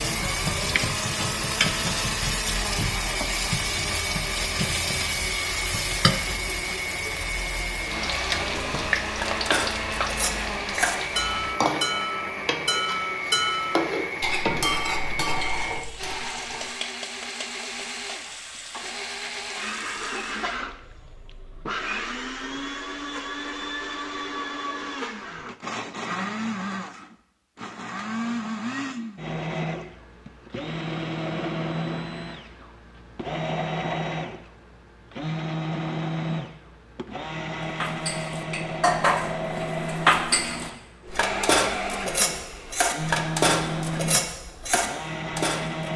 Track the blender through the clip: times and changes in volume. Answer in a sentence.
The blender can be heard from 0.0 to 45.9 s, at a steady volume.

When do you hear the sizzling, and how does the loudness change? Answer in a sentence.
The sizzling can be heard from 0.0 to 20.4 s, getting quieter.